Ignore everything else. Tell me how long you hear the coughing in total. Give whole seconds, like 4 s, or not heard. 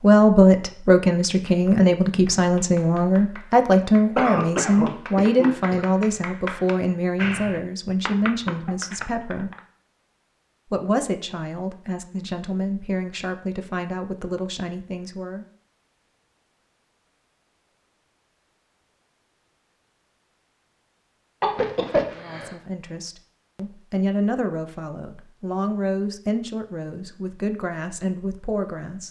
3 s.